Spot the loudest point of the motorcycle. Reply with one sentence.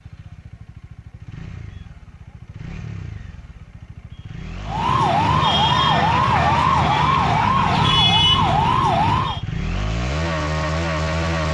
The loudest moment of the motorcycle is at 11 seconds.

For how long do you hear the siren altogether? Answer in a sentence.
The siren can be heard for 5 seconds in total.